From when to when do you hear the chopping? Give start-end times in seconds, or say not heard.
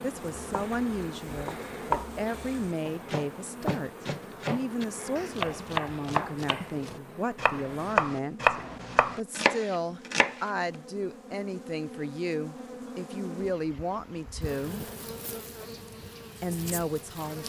0.3-10.8.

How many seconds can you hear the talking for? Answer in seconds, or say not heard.
15 s.